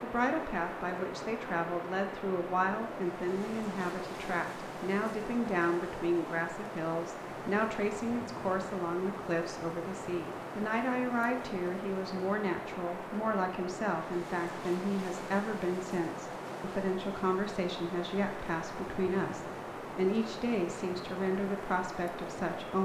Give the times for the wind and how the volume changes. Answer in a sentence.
You can hear the wind from 0.0 to 22.8 s, at a steady volume.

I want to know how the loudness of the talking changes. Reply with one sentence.
The volume of the talking stays about the same.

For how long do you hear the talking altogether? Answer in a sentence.
You can hear the talking for 23 seconds altogether.